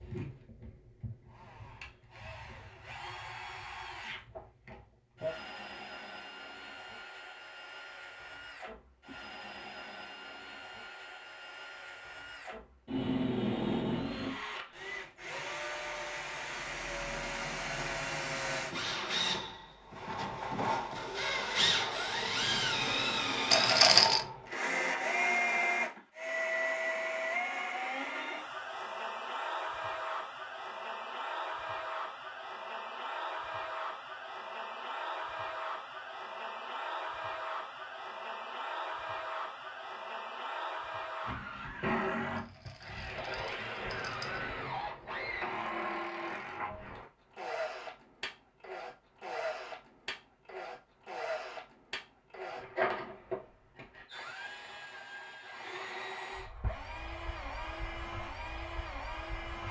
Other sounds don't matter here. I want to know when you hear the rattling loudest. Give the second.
24 s.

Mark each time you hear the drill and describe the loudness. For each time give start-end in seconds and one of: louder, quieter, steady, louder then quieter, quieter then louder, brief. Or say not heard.
0.0-59.6 louder then quieter.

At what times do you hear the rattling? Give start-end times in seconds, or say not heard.
23.5-24.2, 42.4-44.4.